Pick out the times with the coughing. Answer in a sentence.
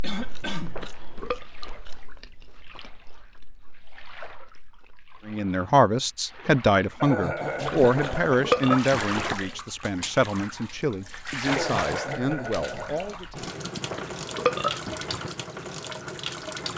The coughing can be heard from 0.0 to 0.8 s, from 7.0 to 8.7 s and from 11.4 to 13.2 s.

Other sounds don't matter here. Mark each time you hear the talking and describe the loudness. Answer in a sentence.
The talking can be heard from 5.2 to 13.4 s, getting quieter.